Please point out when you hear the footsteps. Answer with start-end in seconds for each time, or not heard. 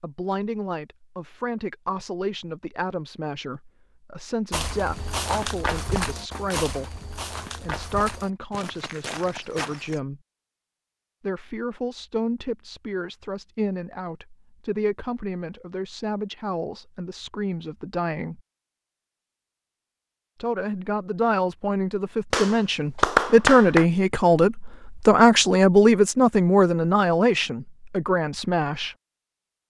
4.5-10.0.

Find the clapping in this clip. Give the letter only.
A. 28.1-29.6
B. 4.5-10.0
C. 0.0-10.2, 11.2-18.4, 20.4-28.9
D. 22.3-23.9
D.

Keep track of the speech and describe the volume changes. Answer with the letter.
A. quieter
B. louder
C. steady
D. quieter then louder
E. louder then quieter
B.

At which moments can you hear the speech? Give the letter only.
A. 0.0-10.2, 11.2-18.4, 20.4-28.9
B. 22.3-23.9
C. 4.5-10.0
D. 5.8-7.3
A.